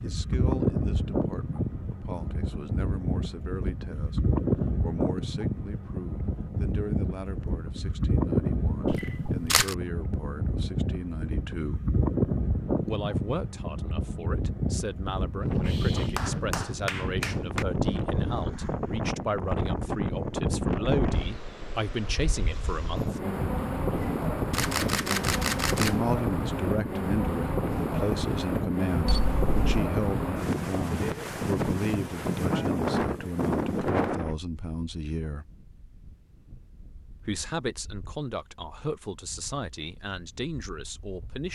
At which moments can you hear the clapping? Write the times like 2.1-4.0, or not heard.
15.6-17.6.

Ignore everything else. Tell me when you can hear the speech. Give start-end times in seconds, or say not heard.
0.0-11.8, 12.8-23.2, 25.8-35.5, 37.2-41.5.